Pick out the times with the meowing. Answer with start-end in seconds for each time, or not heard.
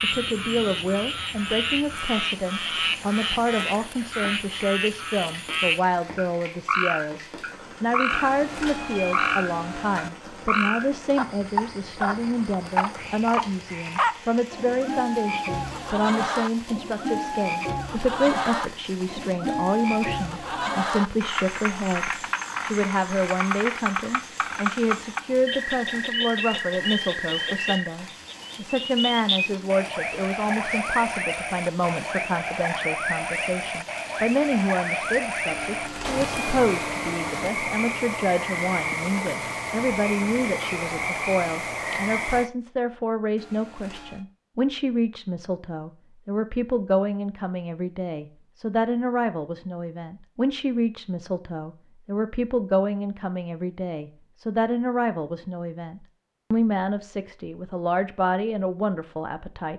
8.1-10.1, 35.5-37.5, 43.4-44.2.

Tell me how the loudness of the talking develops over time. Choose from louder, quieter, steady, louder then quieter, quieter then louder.
steady.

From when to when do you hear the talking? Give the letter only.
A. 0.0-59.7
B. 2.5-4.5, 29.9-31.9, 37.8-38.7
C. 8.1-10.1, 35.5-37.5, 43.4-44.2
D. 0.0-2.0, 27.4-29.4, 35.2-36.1
A.